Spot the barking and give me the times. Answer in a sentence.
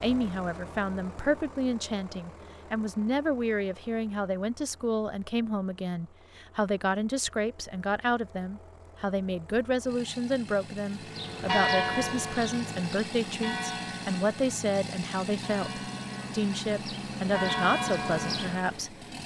The barking can't be heard in this clip.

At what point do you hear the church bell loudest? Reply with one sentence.
The volume of the church bell peaks at 12 seconds.